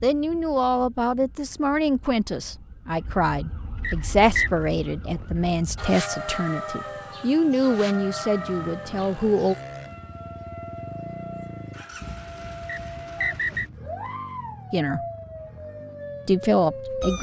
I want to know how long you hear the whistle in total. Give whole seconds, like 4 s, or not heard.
2 s.